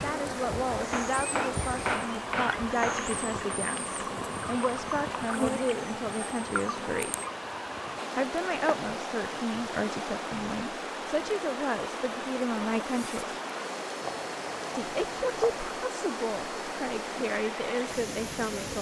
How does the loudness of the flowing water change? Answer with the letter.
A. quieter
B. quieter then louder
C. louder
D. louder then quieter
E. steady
E.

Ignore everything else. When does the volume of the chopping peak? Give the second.
2 s.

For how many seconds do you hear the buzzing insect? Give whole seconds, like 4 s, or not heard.
7 s.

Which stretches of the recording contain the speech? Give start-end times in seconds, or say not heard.
0.0-7.2, 8.2-13.3, 14.7-18.7.